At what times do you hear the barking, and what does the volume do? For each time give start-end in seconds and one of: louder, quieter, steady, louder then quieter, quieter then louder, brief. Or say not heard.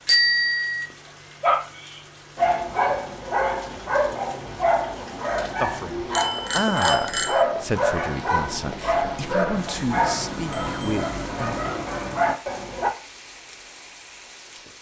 1.4-12.9 steady.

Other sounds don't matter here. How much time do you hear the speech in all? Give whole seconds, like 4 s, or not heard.
6 s.